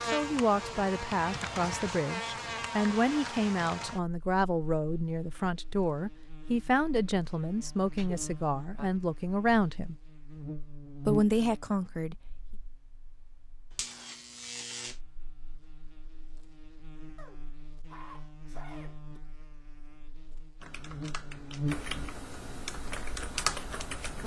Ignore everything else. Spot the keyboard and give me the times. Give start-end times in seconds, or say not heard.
0.0-4.0, 20.6-24.2.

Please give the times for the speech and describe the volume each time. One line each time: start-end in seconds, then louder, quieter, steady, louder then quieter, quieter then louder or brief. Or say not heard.
0.1-9.9 steady
11.1-12.2 brief.